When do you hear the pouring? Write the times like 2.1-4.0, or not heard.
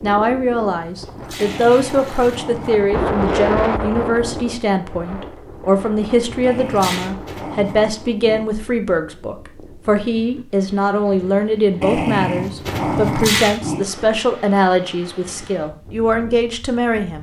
1.0-2.4, 6.3-7.1, 12.9-13.6.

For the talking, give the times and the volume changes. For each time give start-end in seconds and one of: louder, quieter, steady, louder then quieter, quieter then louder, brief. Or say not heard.
0.0-17.1 steady.